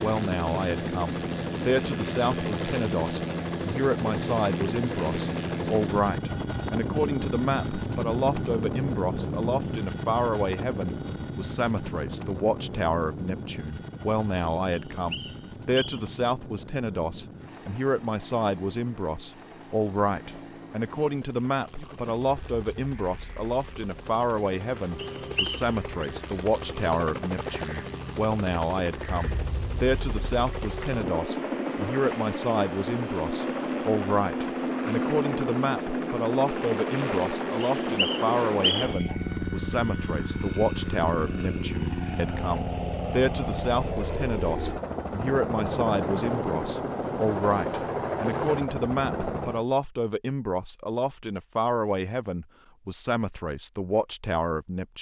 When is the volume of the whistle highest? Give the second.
39 s.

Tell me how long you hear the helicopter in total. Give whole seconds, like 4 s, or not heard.
50 s.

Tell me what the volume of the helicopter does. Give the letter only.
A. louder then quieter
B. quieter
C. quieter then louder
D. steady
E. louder
C.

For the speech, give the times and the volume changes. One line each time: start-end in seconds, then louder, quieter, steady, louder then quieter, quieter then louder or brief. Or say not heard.
0.0-54.9 steady.